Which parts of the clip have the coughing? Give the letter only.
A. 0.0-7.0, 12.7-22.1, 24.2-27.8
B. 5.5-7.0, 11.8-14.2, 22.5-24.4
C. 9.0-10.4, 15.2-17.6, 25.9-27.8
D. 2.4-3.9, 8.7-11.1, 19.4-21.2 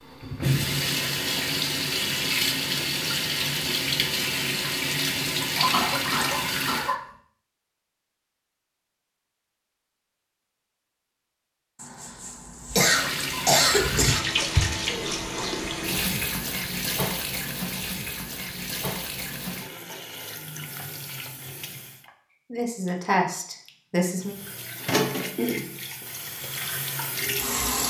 B.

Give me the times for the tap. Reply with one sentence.
The tap can be heard from 0.0 to 7.0 s, from 12.7 to 22.1 s and from 24.2 to 27.8 s.